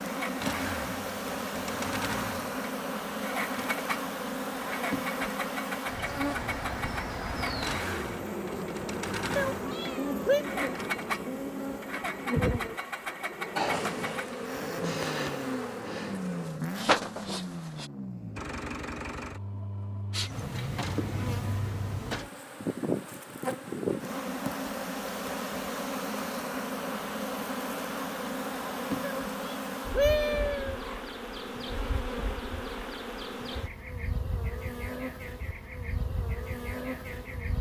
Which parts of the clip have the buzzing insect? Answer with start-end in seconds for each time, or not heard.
0.0-17.9, 20.1-37.5.